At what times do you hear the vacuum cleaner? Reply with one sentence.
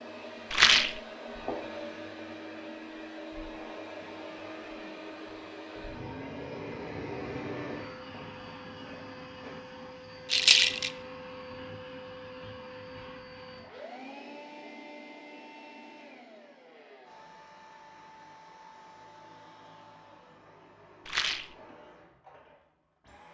The vacuum cleaner can be heard from 0.0 to 23.2 s.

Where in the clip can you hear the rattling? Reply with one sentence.
The rattling can be heard from 0.5 to 1.0 s, from 10.3 to 10.9 s and from 21.1 to 21.6 s.